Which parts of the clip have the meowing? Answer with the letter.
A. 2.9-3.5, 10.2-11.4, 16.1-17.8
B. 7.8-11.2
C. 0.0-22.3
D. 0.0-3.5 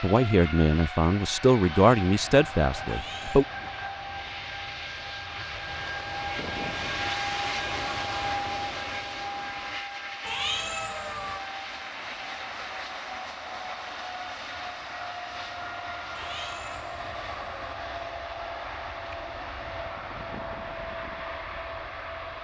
A.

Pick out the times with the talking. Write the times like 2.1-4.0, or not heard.
0.0-3.5.